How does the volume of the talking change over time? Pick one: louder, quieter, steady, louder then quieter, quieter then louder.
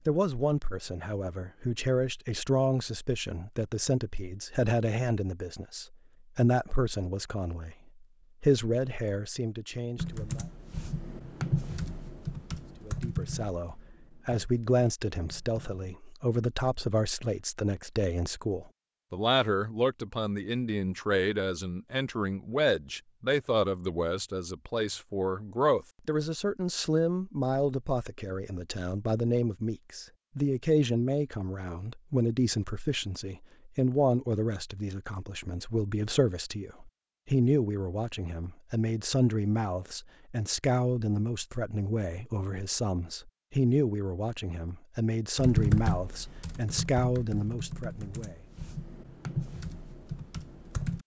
steady.